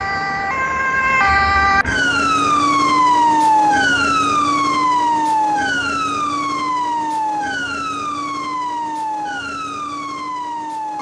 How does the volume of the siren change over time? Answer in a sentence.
The loudness of the siren goes down.